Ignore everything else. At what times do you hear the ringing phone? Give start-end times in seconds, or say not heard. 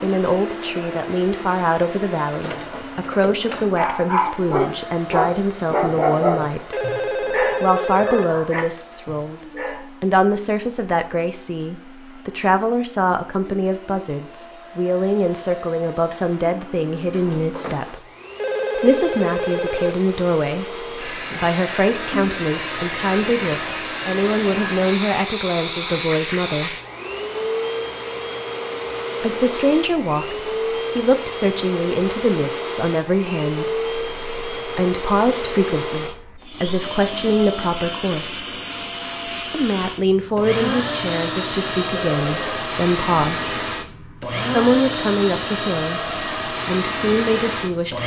6.7-8.2, 18.4-19.9, 42.1-42.6.